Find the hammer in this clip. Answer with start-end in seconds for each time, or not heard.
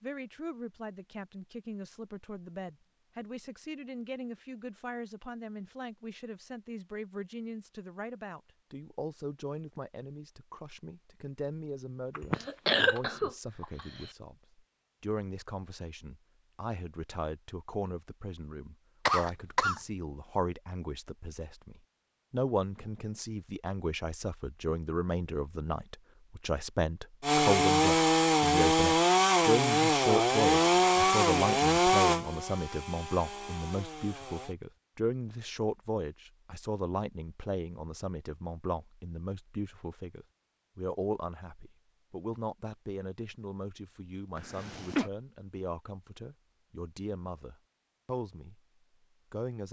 not heard.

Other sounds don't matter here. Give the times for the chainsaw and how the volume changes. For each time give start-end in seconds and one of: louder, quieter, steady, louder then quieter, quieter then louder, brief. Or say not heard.
27.2-34.5 quieter.